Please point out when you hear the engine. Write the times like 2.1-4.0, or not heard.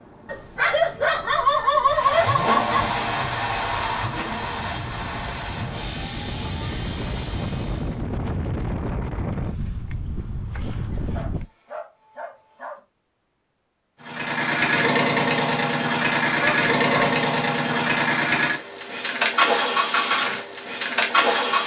1.9-8.0, 14.0-21.6.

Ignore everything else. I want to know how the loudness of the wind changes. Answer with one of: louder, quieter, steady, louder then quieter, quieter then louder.
louder.